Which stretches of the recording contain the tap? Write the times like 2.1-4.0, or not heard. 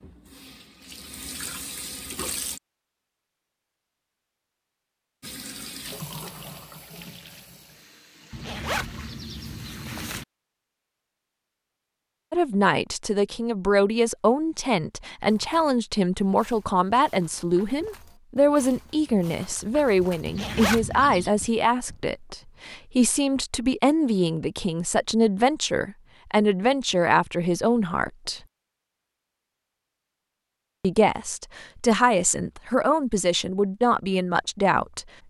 0.0-2.6, 5.2-10.2.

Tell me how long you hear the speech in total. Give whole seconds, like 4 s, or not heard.
20 s.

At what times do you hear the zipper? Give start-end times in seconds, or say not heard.
8.3-10.2, 20.2-21.3.